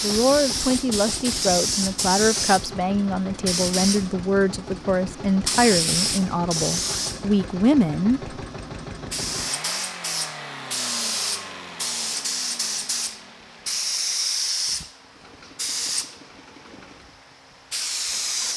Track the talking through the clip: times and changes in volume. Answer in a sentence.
The talking can be heard from 0.0 to 8.3 s, at a steady volume.